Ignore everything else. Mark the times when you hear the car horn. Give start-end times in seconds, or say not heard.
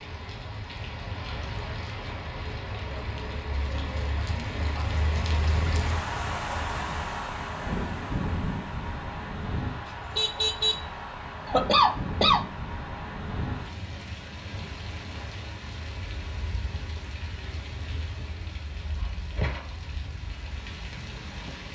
9.8-10.8.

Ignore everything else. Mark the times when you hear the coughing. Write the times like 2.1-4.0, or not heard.
11.4-12.4.